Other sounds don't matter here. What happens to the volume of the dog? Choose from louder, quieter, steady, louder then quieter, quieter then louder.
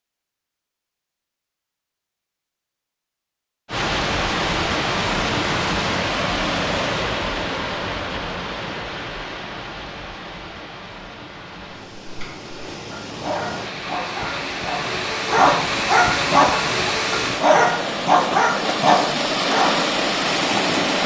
louder.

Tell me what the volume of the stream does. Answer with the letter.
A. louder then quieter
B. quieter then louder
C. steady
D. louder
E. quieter
B.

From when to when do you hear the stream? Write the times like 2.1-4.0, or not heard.
3.6-21.0.